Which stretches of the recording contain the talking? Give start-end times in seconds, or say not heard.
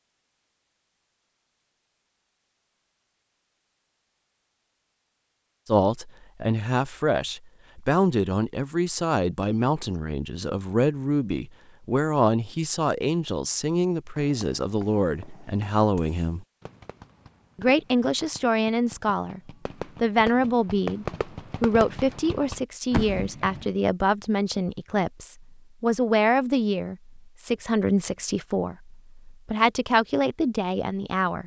5.7-16.4, 17.6-31.4.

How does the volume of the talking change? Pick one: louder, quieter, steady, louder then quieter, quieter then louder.
steady.